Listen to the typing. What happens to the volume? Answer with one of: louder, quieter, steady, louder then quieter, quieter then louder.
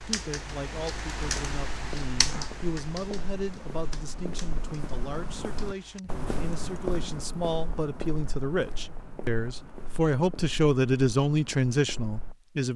quieter.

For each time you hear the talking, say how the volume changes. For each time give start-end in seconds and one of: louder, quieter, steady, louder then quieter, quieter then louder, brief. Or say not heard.
0.0-12.7 louder.